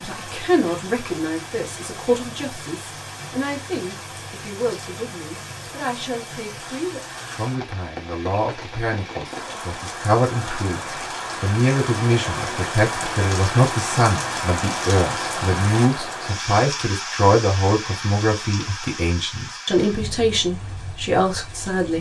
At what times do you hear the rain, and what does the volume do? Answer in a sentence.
You can hear the rain from 0.0 to 21.9 s, getting louder then quieter.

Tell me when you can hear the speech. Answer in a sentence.
The speech can be heard from 0.0 to 21.9 s.